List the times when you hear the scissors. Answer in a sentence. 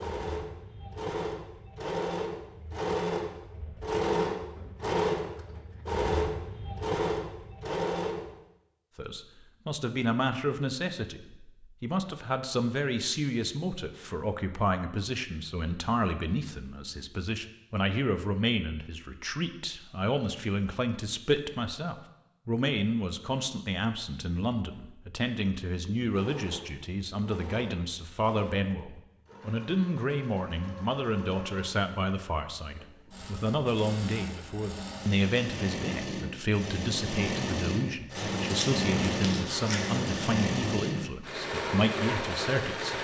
You can hear the scissors from 38.1 to 40.1 s.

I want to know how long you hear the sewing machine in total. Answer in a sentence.
The sewing machine can be heard for 25 seconds in total.